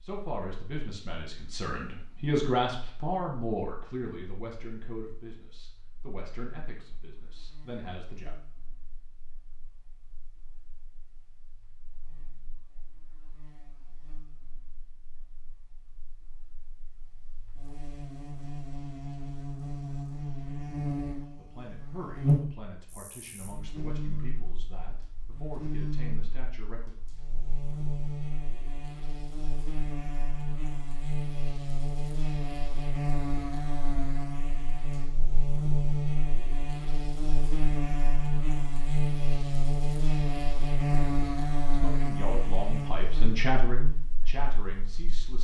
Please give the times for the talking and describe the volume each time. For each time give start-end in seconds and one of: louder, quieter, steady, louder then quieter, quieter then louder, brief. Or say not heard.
0.0-8.3 louder then quieter
21.4-26.9 steady
40.9-45.3 louder then quieter.